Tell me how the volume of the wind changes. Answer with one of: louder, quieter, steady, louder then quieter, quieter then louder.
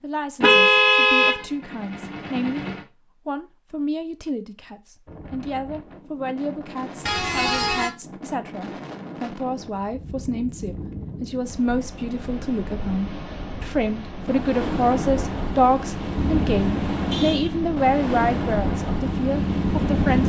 louder.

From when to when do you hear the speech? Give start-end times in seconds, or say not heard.
0.0-2.6, 3.2-20.2.